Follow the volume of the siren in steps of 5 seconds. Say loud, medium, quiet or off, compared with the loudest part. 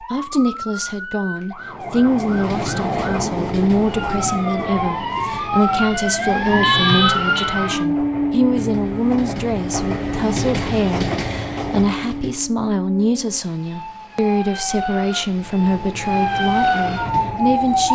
medium, loud, medium, loud.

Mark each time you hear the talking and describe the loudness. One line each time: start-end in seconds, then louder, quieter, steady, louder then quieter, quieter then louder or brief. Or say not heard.
0.1-17.9 steady.